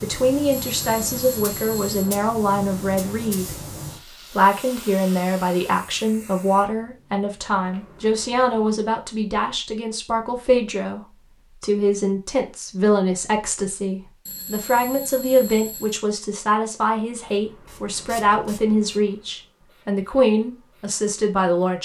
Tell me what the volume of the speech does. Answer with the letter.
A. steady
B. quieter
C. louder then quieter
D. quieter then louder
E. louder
A.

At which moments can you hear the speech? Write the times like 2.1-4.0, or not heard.
0.0-21.7.